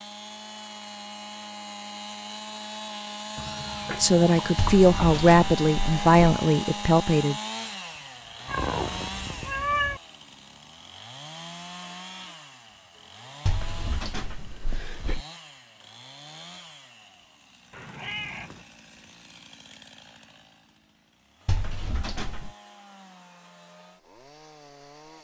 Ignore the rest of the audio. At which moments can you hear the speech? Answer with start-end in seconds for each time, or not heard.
3.9-7.3.